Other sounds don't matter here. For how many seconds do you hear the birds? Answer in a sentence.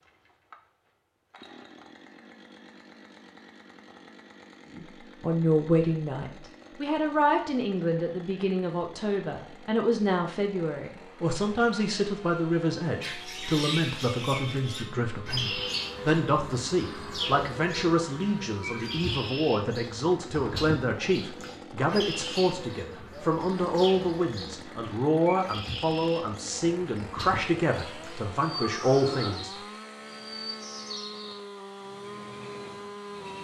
You can hear the birds for 20 seconds altogether.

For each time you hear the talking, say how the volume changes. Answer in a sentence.
The talking can be heard from 4.7 to 29.5 s, at a steady volume.